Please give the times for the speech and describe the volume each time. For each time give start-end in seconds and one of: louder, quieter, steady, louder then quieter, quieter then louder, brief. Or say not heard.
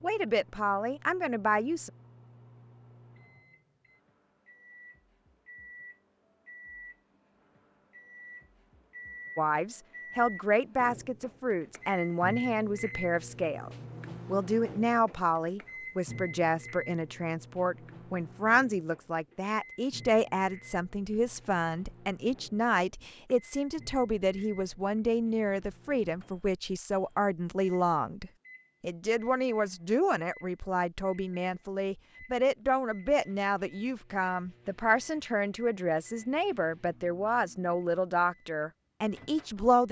0.0-1.9 brief
9.3-39.8 steady.